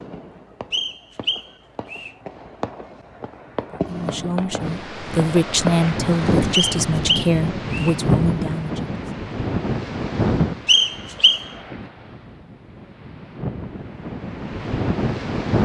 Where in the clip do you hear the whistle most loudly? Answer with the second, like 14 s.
11 s.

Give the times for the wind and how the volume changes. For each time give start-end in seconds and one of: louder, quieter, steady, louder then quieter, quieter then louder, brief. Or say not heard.
4.5-15.6 quieter then louder.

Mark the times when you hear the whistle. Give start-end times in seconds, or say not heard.
0.7-2.1, 6.5-8.0, 10.7-11.4.